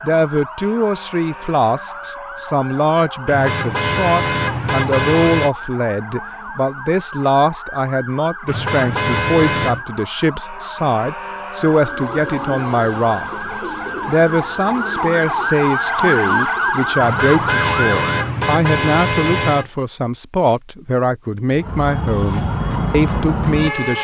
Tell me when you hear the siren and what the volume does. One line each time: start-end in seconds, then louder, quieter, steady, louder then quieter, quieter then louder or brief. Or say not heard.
0.0-18.1 louder
21.5-24.0 brief.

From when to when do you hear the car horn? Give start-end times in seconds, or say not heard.
3.2-5.5, 8.4-9.8, 17.0-19.7.